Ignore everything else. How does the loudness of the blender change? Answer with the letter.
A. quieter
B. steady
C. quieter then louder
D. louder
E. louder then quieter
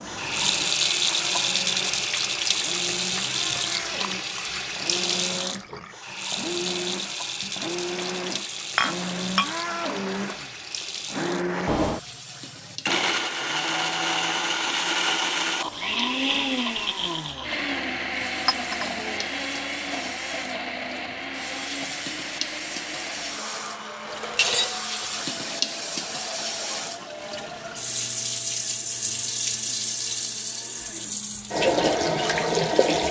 E.